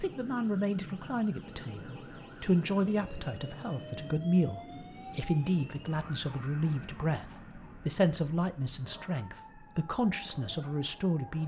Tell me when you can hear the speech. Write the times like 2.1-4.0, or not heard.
0.0-11.4.